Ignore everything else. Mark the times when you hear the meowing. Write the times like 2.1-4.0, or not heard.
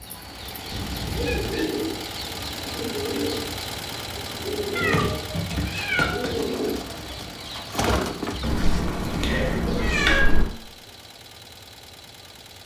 0.7-1.7, 4.8-6.5, 8.4-10.4.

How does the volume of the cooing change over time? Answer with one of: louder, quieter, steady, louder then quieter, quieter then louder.
steady.